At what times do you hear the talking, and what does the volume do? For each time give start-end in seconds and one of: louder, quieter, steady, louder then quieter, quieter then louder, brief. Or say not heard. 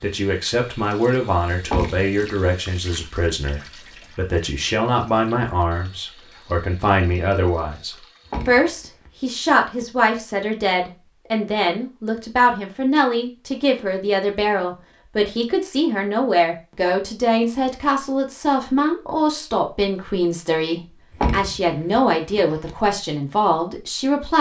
0.0-24.3 steady.